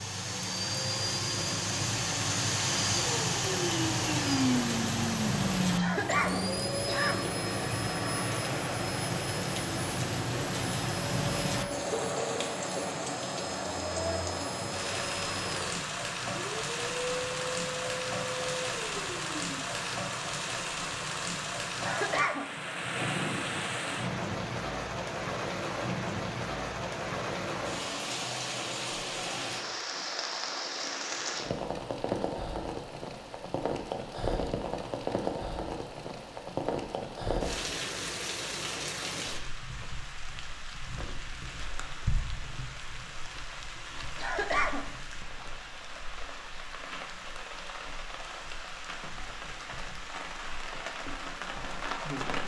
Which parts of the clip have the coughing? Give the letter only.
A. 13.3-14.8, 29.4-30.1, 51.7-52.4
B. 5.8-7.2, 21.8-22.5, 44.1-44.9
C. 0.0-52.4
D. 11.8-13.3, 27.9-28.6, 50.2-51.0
B.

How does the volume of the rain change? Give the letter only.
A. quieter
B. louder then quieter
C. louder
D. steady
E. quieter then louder
A.